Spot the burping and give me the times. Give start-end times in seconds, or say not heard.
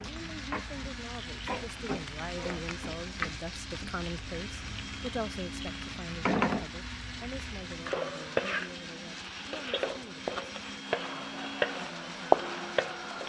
not heard.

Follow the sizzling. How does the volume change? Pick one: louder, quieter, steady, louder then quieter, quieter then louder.
louder.